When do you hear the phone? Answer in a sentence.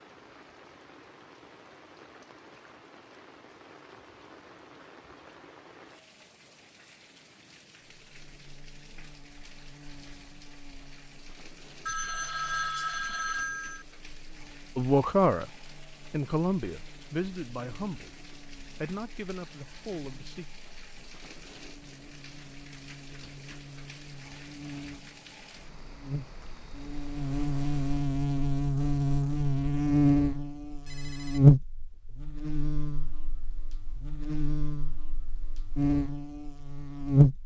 The phone can be heard from 11.8 to 13.8 s and from 30.6 to 31.6 s.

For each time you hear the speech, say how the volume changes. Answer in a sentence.
You can hear the speech from 14.8 to 20.4 s, getting quieter.